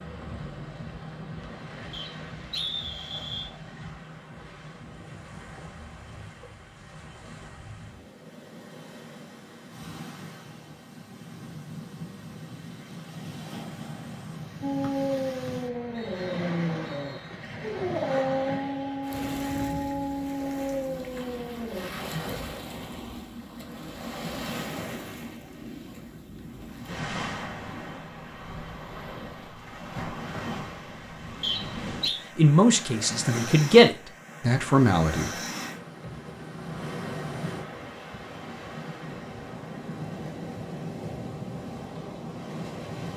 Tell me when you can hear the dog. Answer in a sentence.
The dog can be heard from 14.6 to 21.9 s.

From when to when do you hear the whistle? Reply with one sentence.
The whistle can be heard from 1.9 to 3.5 s, from 14.8 to 17.3 s and from 31.4 to 32.2 s.